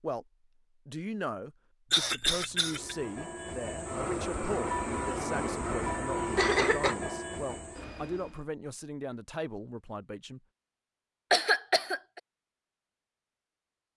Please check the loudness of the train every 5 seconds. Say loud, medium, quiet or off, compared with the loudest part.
loud, loud, off.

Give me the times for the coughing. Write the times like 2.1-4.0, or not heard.
1.9-3.0, 6.3-7.0, 11.3-12.2.